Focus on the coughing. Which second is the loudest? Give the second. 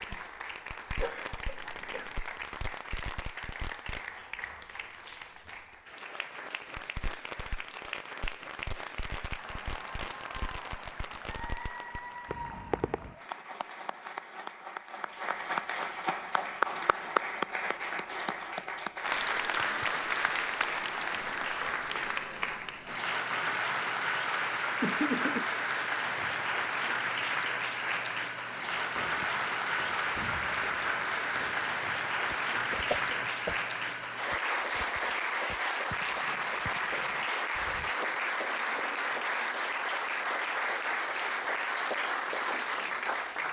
25 s.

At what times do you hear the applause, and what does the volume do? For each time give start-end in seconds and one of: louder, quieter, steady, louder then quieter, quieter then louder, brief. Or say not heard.
0.0-43.4 louder.